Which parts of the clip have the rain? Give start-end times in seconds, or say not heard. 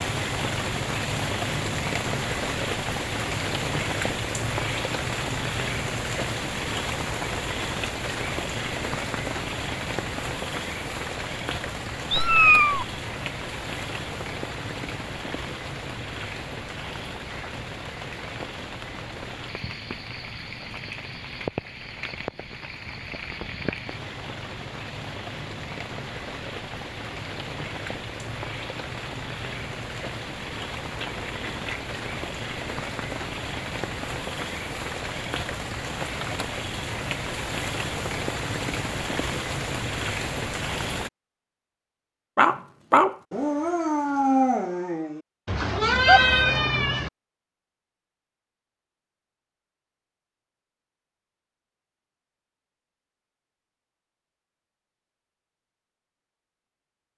0.0-41.1.